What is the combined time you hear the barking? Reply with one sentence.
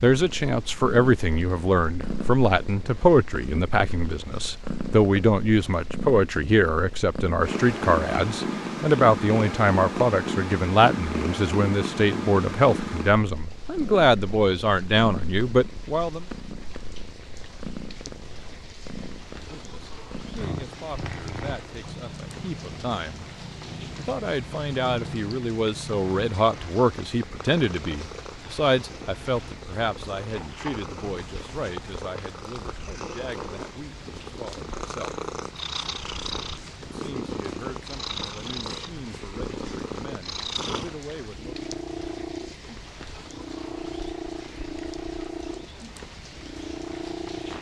The barking can't be heard in this clip.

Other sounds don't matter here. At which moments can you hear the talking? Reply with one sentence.
The talking can be heard from 0.0 to 16.2 s, from 19.4 to 23.2 s, from 23.9 to 35.2 s and from 36.9 to 41.5 s.